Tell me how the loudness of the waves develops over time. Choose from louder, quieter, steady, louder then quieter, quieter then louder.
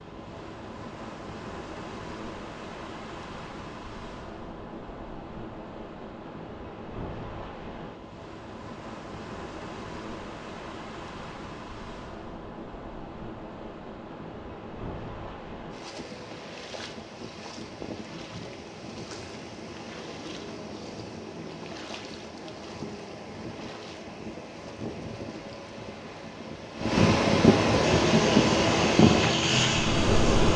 louder.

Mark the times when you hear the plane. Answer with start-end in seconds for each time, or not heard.
27.8-30.5.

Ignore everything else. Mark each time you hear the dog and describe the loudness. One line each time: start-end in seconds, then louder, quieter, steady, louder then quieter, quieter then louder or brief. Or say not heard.
not heard.